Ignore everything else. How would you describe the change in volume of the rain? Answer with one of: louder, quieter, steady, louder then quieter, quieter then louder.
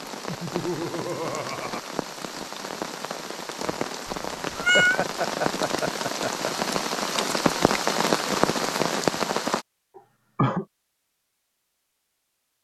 louder.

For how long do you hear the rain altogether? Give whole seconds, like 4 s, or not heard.
10 s.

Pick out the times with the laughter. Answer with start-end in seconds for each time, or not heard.
0.2-1.8, 4.5-6.5, 9.9-10.7.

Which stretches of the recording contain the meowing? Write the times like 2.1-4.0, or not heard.
4.0-5.0.